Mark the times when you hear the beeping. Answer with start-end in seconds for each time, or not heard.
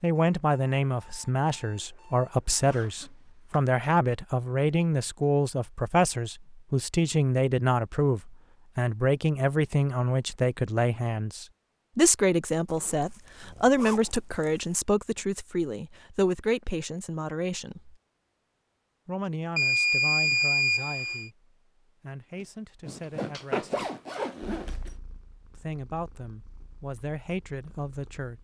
0.1-2.5, 19.6-21.3.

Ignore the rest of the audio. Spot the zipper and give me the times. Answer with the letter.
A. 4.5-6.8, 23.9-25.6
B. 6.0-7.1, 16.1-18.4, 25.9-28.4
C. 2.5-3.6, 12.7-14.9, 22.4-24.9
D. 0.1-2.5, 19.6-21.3
C.